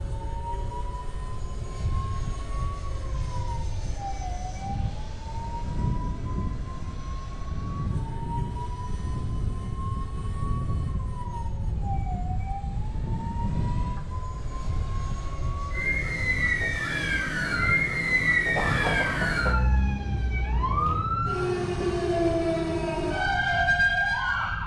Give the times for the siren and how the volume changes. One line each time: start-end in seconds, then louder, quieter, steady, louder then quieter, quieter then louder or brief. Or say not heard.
0.0-24.6 louder.